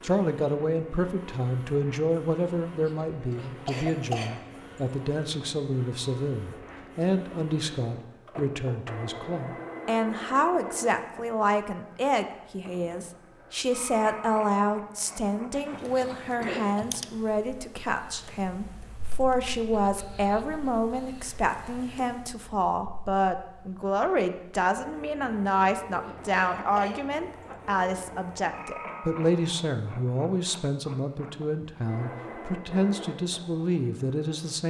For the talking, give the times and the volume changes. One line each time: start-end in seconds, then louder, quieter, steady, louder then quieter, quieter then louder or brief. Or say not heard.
0.0-34.6 steady.